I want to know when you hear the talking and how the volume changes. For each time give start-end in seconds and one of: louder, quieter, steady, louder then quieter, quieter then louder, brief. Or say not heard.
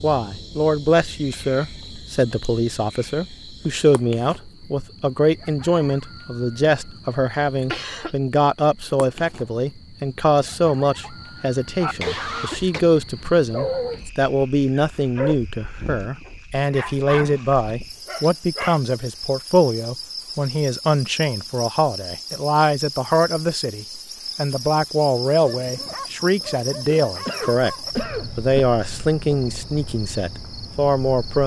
0.0-31.4 steady.